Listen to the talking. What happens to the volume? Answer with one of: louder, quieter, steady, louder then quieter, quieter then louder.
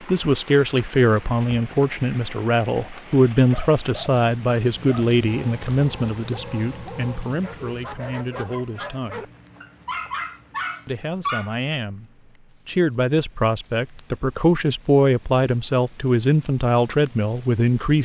quieter then louder.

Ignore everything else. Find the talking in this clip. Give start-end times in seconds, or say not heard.
0.1-9.3, 10.8-18.0.